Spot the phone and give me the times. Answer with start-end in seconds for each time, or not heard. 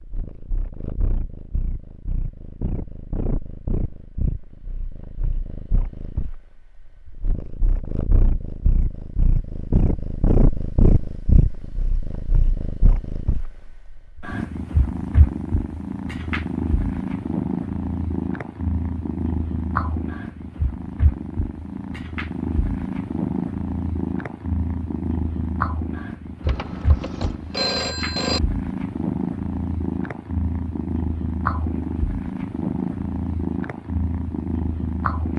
26.4-28.4.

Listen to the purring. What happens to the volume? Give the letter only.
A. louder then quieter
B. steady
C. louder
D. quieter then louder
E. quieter
C.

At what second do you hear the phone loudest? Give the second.
28 s.